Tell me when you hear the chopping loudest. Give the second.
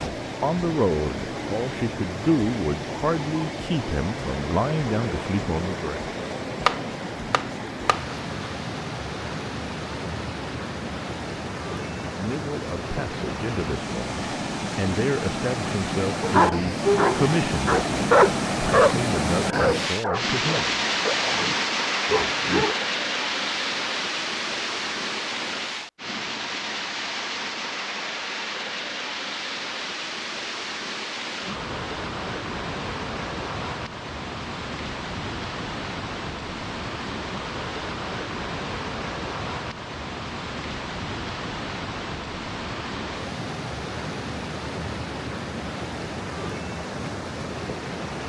7 s.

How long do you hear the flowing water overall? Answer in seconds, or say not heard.
48 s.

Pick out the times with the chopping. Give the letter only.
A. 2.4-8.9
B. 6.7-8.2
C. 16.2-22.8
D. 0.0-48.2
B.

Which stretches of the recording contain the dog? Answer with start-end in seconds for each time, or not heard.
16.2-22.8.